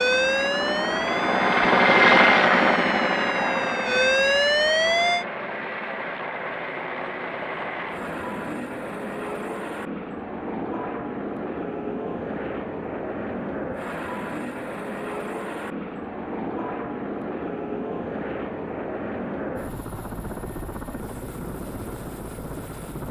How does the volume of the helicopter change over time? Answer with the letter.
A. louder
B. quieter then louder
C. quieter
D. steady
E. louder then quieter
C.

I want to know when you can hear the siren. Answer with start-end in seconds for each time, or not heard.
0.0-5.2.